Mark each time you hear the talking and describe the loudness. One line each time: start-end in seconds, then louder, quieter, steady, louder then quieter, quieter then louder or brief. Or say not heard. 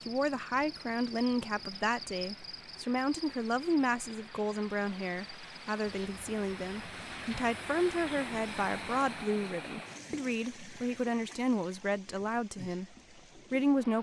0.1-13.9 steady.